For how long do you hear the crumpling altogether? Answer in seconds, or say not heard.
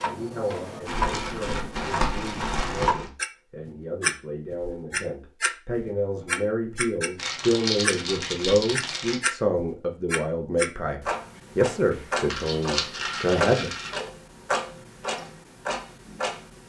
6 s.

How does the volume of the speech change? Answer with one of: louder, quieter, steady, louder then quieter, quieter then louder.
louder.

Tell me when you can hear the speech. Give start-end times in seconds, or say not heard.
0.0-13.7.